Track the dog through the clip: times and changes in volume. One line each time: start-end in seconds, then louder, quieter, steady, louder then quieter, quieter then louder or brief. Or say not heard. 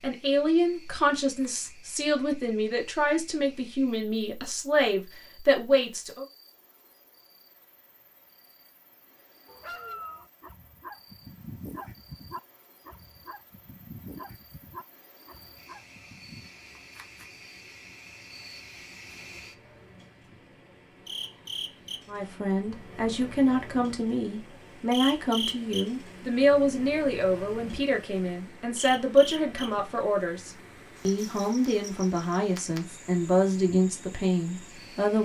9.4-16.5 quieter.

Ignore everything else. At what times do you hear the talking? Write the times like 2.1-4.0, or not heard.
0.0-6.2, 22.1-35.2.